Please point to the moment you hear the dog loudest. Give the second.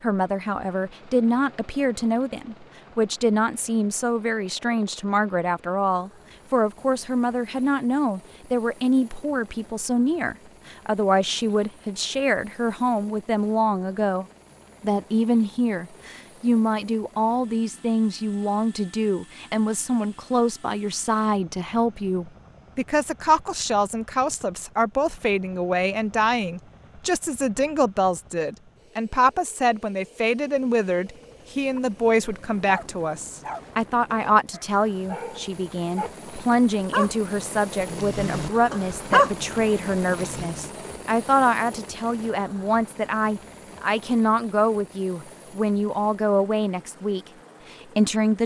39 s.